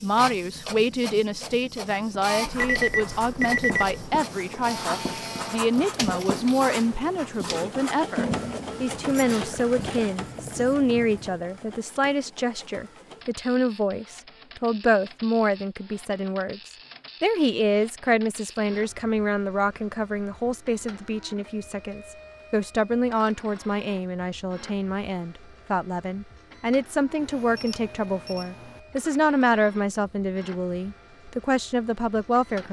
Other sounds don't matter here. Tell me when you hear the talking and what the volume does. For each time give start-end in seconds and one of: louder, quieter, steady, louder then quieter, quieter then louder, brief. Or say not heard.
0.0-32.6 steady.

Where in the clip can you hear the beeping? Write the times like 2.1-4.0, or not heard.
2.5-4.2, 27.6-28.4.